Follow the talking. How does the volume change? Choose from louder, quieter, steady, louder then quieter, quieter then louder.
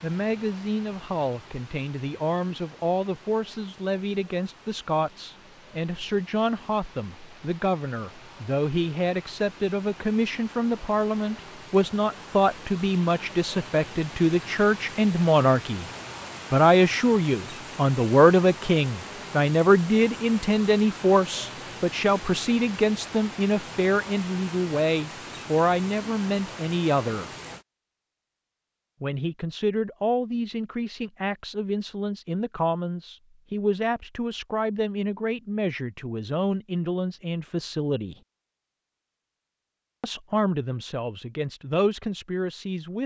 louder then quieter.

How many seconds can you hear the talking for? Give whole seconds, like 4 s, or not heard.
39 s.